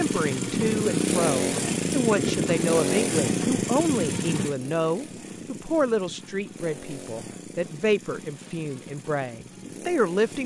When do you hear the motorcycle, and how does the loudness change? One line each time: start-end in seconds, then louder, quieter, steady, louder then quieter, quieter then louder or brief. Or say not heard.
0.0-10.4 quieter.